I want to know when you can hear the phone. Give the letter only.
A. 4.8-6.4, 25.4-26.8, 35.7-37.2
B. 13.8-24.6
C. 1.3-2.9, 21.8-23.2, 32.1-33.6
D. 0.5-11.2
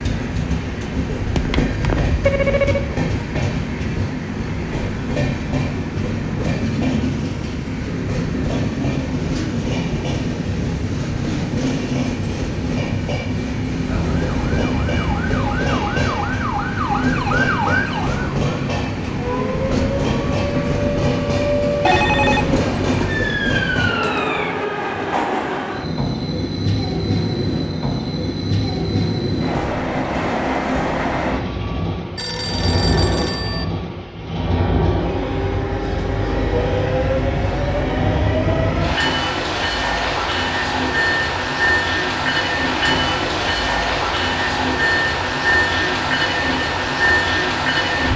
C.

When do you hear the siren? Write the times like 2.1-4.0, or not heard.
13.8-24.6.